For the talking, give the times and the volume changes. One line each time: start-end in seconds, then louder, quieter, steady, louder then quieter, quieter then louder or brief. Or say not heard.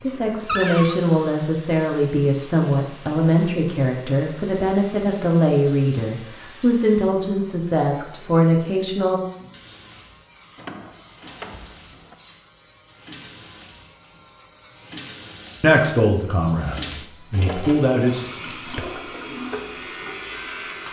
0.0-9.2 steady
15.6-18.3 brief.